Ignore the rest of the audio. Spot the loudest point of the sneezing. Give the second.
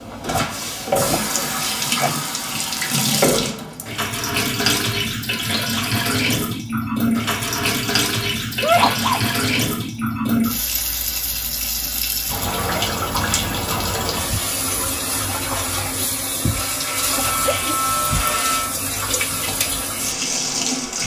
9 s.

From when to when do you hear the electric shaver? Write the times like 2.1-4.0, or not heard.
16.6-18.8.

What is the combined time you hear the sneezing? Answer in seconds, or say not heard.
3 s.